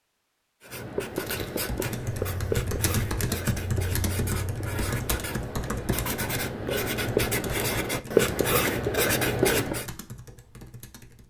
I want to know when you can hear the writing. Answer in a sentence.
You can hear the writing from 0.6 to 9.8 s.